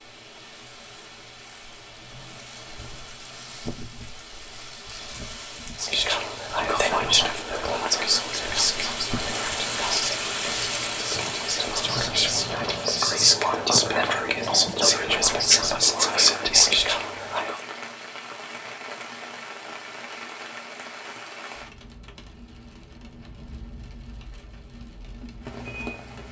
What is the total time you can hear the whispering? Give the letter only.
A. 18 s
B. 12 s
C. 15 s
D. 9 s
B.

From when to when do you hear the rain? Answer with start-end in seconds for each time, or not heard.
0.0-26.2.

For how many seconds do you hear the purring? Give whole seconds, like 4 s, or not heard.
not heard.